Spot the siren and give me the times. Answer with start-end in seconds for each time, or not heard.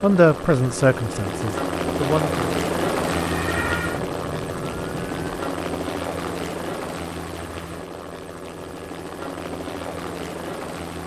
3.2-5.5.